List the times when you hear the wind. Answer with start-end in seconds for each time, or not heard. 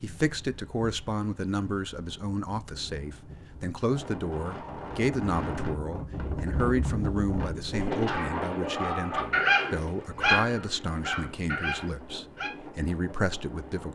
0.0-13.9.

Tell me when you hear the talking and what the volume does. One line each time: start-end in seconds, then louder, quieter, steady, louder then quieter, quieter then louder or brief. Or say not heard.
0.0-13.9 steady.